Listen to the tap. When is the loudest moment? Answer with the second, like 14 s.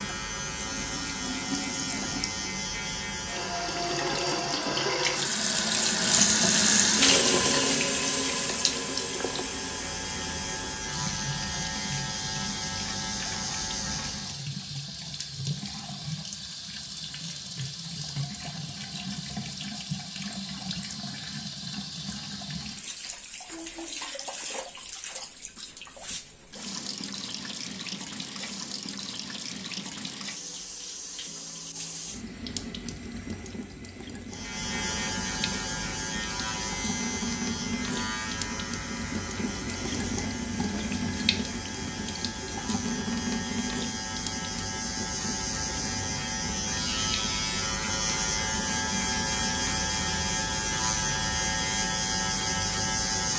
7 s.